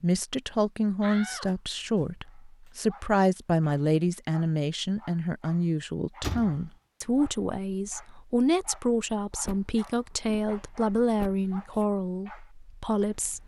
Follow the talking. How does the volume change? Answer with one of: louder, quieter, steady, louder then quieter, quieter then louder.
steady.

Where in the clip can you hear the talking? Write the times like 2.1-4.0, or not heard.
0.0-13.4.